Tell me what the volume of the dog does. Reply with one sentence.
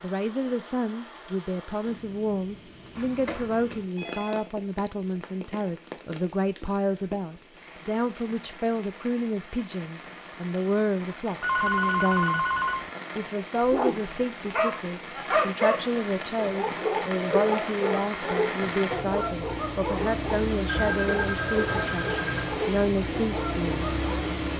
The volume of the dog goes down.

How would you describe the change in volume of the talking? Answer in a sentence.
The loudness of the talking stays about the same.